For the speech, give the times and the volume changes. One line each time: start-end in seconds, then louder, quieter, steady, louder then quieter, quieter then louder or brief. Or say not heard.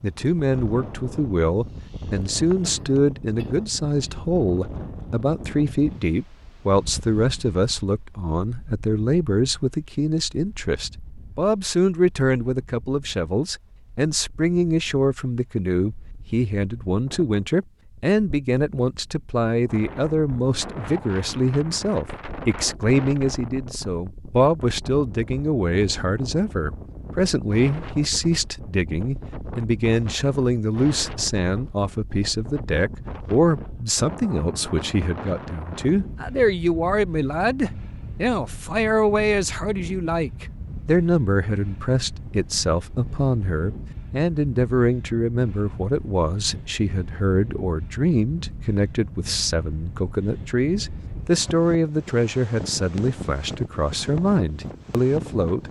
0.0-55.6 steady.